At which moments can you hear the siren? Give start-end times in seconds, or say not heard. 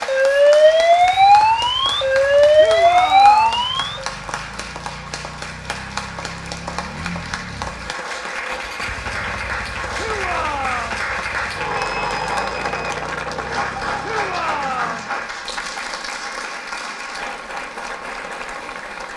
0.0-4.0.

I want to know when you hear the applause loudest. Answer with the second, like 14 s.
12 s.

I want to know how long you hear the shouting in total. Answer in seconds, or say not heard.
3 s.